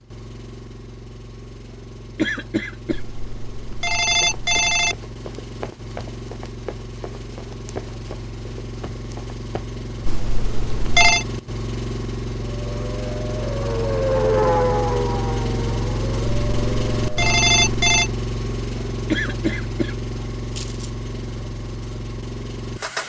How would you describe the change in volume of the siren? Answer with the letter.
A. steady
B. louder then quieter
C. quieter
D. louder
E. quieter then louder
B.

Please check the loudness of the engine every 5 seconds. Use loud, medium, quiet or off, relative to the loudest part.
quiet, medium, loud, loud, medium.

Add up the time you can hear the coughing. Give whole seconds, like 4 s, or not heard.
3 s.